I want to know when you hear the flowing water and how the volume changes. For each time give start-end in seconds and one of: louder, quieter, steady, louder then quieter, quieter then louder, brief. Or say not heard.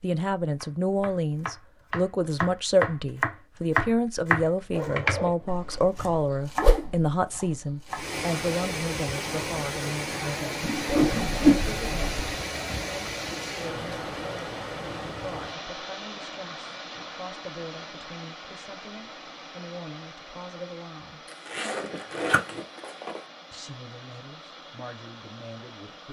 7.8-26.0 quieter.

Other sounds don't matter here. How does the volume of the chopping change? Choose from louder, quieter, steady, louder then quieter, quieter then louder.
louder then quieter.